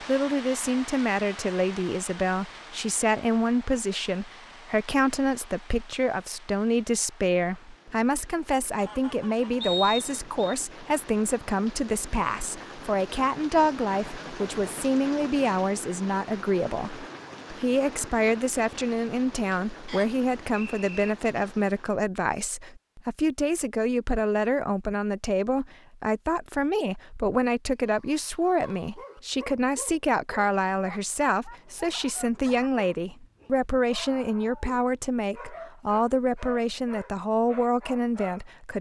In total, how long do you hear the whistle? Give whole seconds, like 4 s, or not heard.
2 s.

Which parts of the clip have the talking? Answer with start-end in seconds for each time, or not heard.
0.0-38.7.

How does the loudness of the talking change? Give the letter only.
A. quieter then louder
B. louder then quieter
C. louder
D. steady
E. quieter
D.